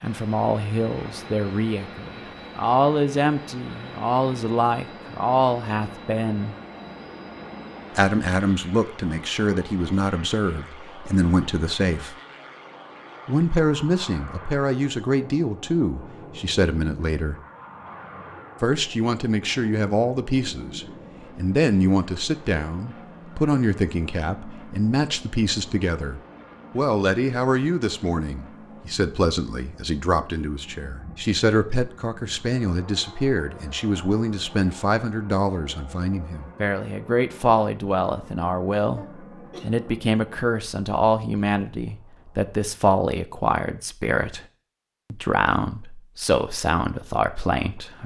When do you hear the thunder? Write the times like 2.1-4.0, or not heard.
not heard.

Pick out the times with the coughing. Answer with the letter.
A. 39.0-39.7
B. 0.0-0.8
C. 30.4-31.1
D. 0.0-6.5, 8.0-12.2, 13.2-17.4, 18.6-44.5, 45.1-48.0
A.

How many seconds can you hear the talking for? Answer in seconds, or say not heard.
44 s.